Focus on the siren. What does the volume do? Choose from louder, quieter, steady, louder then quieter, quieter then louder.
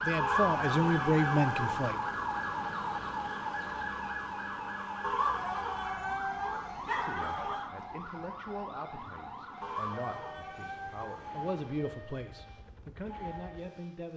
quieter.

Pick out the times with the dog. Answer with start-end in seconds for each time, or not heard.
0.1-1.9, 5.0-7.7, 9.6-11.3.